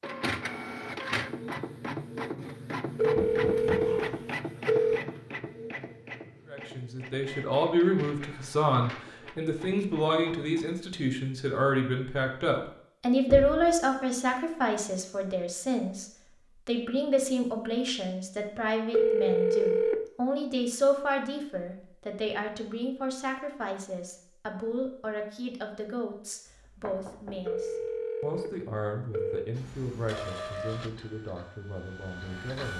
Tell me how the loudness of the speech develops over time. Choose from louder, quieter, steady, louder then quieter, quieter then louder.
quieter.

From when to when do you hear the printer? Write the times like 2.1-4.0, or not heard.
0.0-10.7, 29.6-32.7.